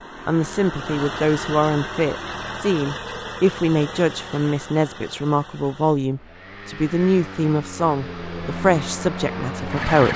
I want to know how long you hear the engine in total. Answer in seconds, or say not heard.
10 s.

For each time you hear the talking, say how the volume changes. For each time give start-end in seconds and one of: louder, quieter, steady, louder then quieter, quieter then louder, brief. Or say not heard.
0.2-10.1 steady.